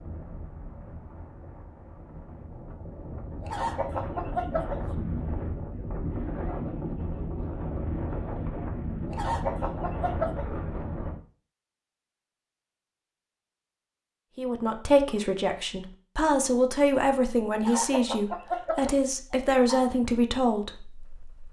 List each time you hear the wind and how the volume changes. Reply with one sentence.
You can hear the wind from 0.0 to 11.2 s, getting louder.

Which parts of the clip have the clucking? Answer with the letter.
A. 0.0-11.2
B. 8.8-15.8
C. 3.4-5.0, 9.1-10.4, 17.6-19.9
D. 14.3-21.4
C.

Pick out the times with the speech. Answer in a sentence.
You can hear the speech from 14.3 to 21.4 s.